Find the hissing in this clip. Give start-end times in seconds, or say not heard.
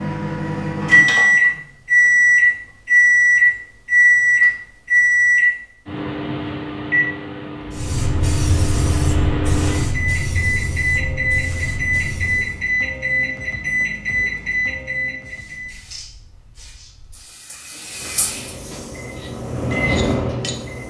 7.7-12.7, 15.2-20.8.